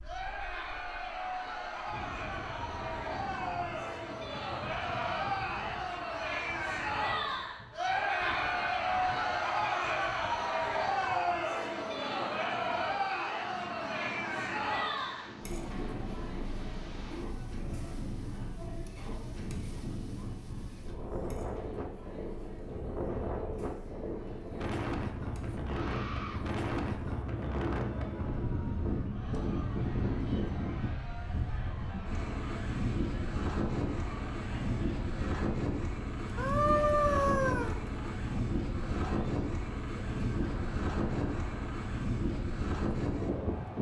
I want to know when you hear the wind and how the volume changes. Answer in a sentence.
The wind can be heard from 0.0 to 43.7 s, getting louder.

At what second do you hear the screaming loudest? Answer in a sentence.
The volume of the screaming peaks at 37 seconds.